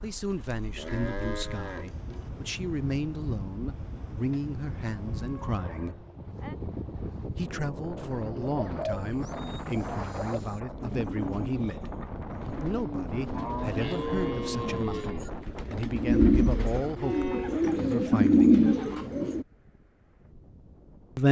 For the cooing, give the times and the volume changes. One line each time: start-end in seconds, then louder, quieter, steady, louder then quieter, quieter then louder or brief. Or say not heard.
8.0-19.4 louder.